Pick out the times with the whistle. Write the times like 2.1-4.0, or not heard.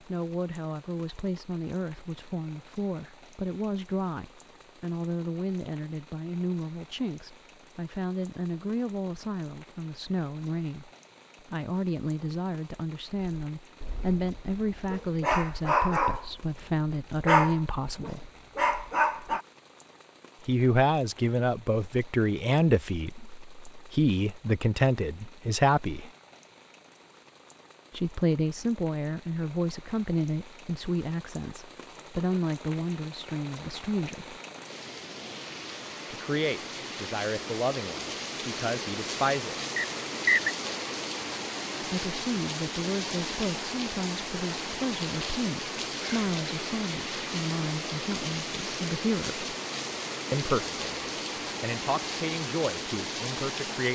39.8-40.5.